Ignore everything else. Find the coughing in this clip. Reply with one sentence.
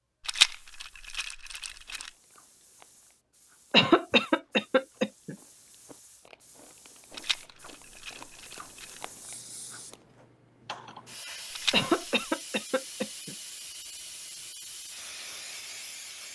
The coughing can be heard from 3.7 to 5.3 s and from 11.7 to 13.3 s.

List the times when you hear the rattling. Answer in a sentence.
The rattling can be heard from 0.2 to 2.1 s, from 7.1 to 9.0 s and from 11.5 to 12.2 s.